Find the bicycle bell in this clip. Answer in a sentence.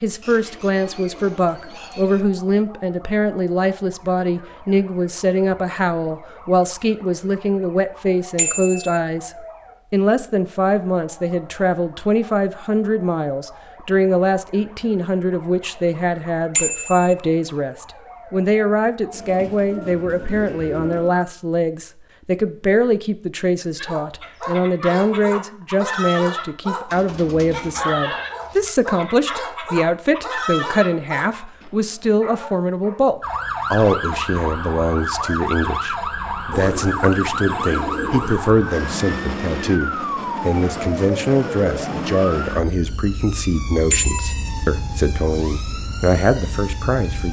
You can hear the bicycle bell from 8.3 to 9.0 s, from 16.5 to 17.1 s and from 43.9 to 44.5 s.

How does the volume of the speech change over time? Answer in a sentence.
The volume of the speech stays about the same.